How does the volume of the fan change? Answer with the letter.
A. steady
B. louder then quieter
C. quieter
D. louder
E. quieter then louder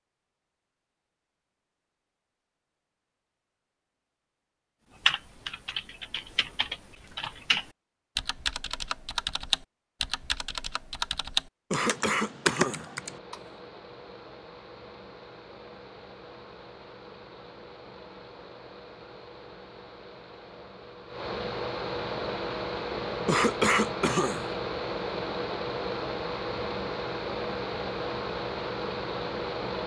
D.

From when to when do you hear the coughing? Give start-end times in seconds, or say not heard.
11.7-12.9, 23.2-24.6.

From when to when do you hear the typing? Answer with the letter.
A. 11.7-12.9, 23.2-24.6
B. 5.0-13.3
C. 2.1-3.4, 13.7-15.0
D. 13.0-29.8
B.